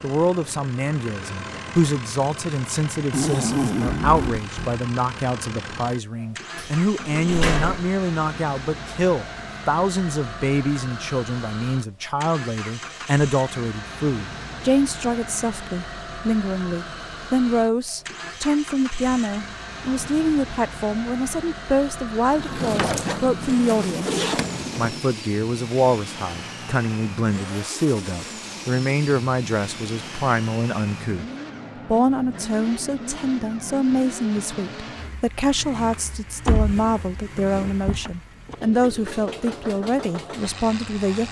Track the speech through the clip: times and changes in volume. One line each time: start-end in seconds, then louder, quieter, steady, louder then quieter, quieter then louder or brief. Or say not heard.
0.0-41.2 steady.